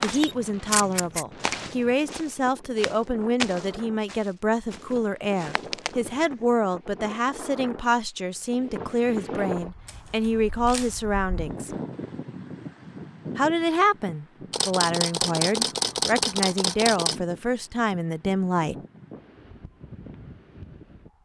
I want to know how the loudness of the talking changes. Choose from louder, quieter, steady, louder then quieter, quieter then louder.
steady.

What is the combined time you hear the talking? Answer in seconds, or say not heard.
17 s.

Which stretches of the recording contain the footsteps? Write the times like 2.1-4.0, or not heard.
0.0-6.2.